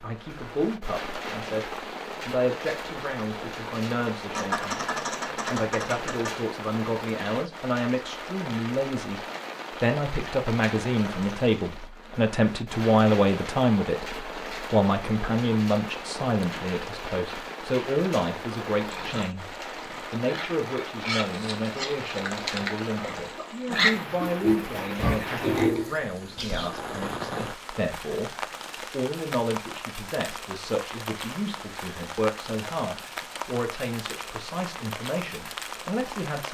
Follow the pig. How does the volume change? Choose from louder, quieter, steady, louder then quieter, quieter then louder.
louder.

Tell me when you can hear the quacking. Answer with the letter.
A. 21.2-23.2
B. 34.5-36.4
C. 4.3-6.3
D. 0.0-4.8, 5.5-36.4
C.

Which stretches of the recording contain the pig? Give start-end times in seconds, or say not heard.
18.8-26.7.